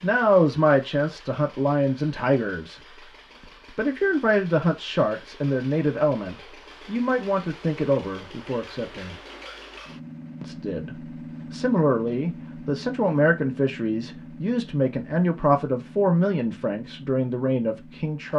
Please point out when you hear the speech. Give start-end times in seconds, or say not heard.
0.0-2.8, 3.8-9.2, 10.4-18.3.